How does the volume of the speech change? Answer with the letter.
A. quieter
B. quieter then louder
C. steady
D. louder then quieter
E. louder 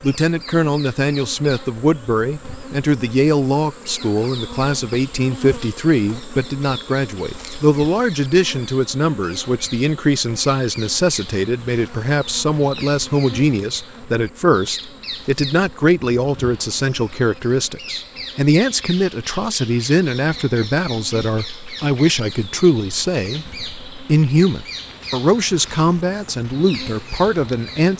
C.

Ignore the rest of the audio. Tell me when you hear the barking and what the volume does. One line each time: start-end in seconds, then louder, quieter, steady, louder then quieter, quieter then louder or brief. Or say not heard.
not heard.